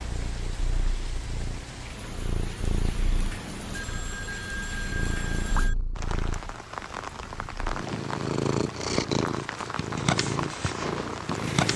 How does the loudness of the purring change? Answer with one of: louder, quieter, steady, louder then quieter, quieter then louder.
louder.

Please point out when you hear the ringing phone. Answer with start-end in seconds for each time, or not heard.
3.7-5.8.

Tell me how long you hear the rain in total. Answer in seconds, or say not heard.
12 s.